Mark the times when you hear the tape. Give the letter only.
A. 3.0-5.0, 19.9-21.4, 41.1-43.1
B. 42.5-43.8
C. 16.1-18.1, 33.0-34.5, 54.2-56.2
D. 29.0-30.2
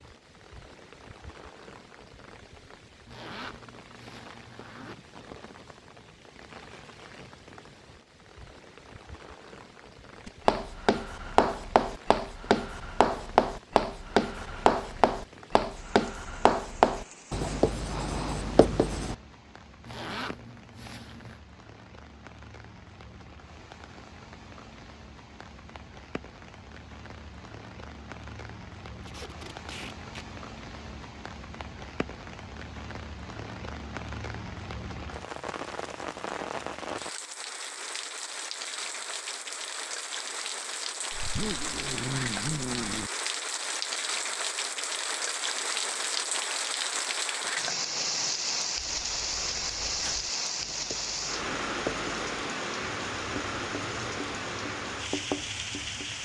D.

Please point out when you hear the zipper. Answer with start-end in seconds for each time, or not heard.
3.0-5.0, 19.9-21.4, 41.1-43.1.